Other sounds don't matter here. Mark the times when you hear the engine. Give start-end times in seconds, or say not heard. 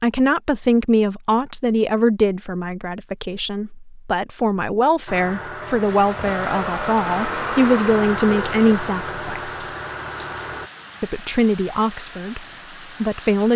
5.0-10.7.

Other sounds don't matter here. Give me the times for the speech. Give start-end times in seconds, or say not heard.
0.0-9.7, 11.0-13.5.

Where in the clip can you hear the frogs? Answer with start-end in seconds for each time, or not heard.
not heard.